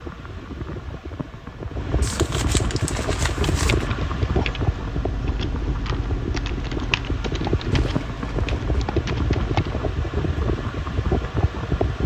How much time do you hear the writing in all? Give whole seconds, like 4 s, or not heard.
not heard.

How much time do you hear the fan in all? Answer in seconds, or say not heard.
12 s.